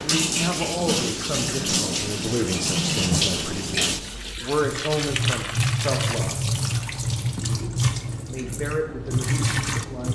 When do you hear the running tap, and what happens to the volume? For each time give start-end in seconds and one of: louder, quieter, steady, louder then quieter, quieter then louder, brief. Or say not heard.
0.0-10.1 steady.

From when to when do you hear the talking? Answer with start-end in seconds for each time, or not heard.
0.0-6.4, 8.2-10.1.